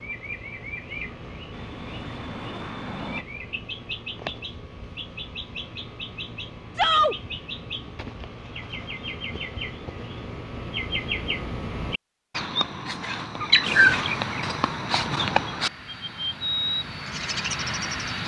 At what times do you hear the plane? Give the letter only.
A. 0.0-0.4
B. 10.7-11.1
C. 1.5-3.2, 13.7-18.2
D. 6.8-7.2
C.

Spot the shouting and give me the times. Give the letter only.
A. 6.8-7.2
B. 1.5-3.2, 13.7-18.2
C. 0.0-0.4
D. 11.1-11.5
A.